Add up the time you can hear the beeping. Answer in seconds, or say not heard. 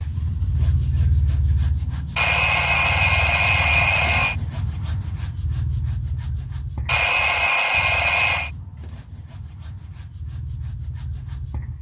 4 s.